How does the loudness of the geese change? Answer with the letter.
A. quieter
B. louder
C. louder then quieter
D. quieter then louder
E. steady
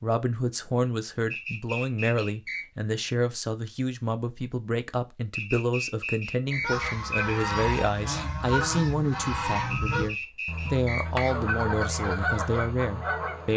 E.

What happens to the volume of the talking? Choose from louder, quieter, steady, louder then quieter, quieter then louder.
steady.